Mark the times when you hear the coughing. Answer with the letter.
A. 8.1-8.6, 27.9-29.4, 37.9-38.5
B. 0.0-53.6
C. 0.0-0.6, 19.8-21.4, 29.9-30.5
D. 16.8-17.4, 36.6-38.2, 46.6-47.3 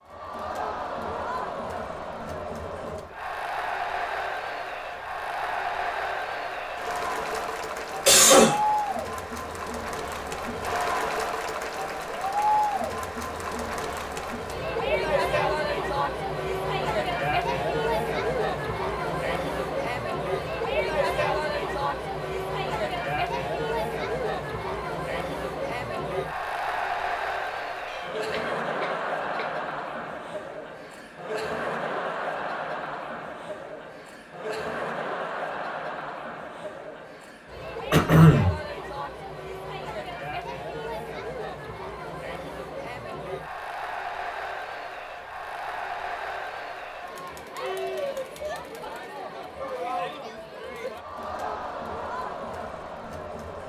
A.